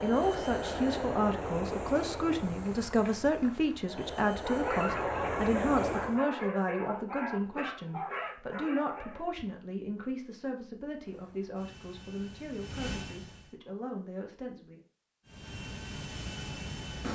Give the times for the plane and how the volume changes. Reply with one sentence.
You can hear the plane from 0.0 to 6.2 s, getting quieter then louder; briefly from 10.9 to 13.6 s; and briefly from 15.2 to 17.0 s.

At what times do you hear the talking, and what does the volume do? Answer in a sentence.
You can hear the talking from 0.0 to 14.8 s, getting quieter.